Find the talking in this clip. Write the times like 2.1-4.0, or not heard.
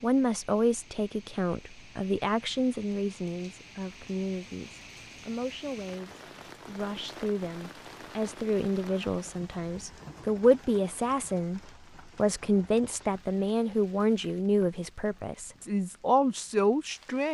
0.0-17.2.